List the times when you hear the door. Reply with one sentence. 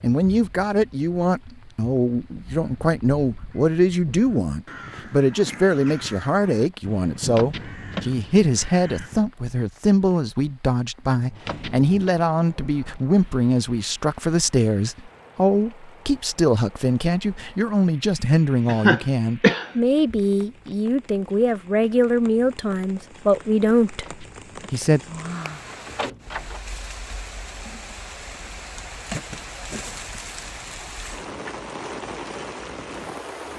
The door can be heard from 7.3 to 8.2 s, from 11.4 to 12.1 s and from 24.0 to 26.6 s.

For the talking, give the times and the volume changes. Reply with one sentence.
The talking can be heard from 0.0 to 25.0 s, at a steady volume.